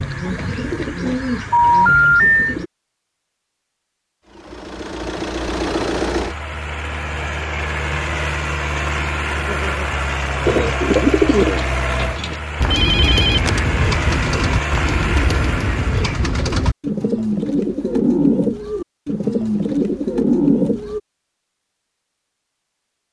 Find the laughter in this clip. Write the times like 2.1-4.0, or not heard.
9.3-9.9.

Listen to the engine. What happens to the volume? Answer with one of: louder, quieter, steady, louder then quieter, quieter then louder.
steady.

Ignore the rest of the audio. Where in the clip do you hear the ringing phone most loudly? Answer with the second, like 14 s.
2 s.